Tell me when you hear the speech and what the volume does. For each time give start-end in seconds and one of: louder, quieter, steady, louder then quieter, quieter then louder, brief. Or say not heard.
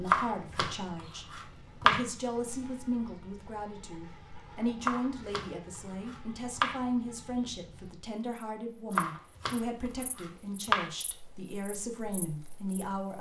0.0-13.1 steady.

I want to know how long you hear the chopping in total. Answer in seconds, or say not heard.
6 s.